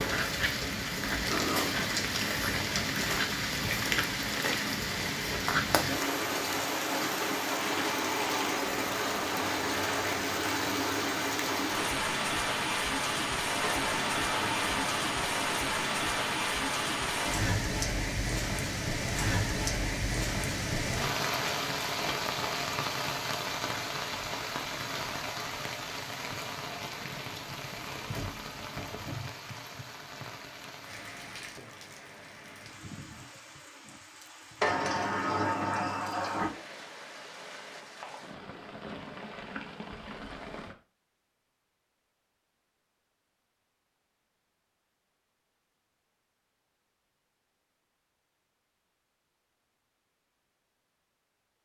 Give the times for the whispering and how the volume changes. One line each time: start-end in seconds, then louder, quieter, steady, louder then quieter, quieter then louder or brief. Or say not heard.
not heard.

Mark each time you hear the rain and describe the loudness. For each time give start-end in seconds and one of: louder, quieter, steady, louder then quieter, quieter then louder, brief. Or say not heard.
0.0-40.8 quieter.